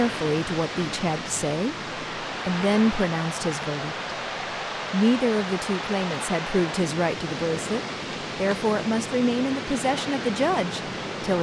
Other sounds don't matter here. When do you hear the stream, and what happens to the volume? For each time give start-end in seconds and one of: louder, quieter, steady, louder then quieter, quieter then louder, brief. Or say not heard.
0.0-11.3 steady.